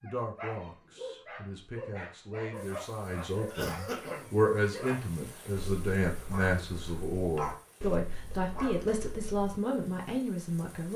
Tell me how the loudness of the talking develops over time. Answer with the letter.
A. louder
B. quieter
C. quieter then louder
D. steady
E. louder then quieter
A.